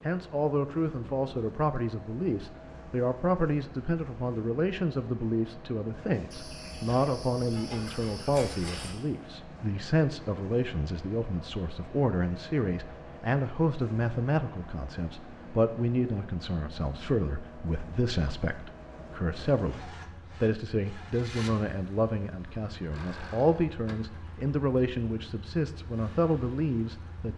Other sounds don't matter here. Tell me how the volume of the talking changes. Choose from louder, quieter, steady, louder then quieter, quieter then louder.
steady.